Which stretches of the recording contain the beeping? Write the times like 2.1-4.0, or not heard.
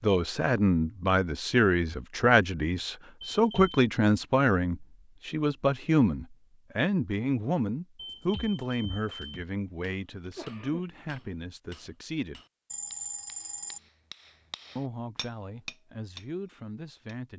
3.2-3.8, 8.0-9.4, 12.7-13.8.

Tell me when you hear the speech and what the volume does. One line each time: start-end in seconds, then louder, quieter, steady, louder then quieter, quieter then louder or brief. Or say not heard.
0.0-12.4 quieter
14.8-17.3 brief.